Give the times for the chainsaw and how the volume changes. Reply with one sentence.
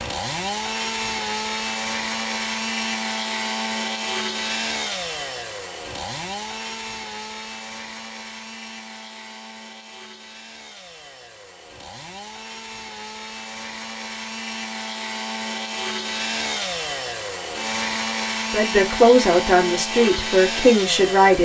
The chainsaw can be heard from 0.0 to 21.3 s, getting quieter then louder.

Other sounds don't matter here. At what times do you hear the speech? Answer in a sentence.
The speech can be heard from 18.5 to 21.3 s.